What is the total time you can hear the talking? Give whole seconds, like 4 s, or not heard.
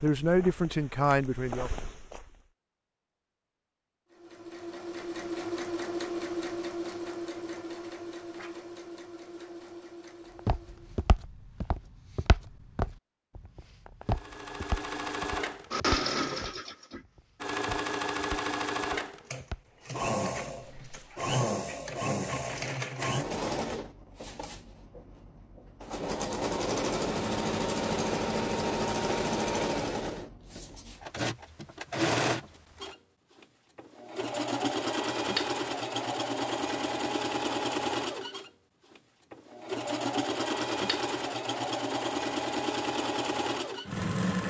2 s.